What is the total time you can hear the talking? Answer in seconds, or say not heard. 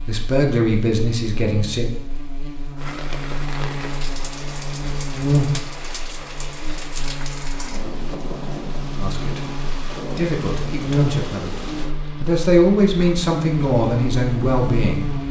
7 s.